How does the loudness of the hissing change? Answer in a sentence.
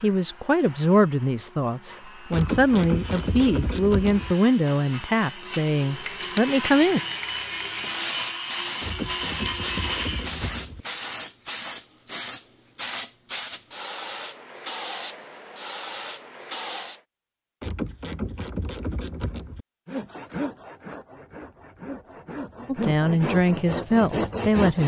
The volume of the hissing stays about the same.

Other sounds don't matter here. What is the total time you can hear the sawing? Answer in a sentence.
You can hear the sawing for 15 seconds altogether.